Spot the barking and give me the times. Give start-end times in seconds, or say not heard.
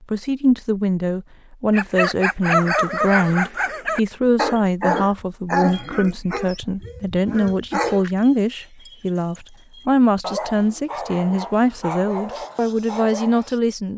1.7-13.6.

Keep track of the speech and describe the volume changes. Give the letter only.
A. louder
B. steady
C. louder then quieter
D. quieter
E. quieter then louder
B.